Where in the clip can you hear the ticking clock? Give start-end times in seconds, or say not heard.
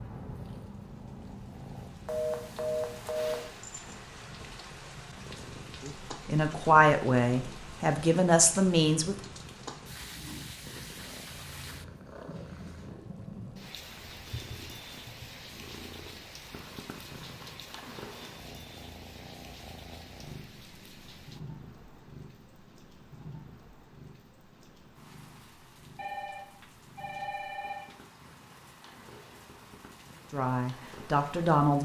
not heard.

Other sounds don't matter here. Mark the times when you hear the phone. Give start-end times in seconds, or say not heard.
2.0-3.5, 25.9-27.9.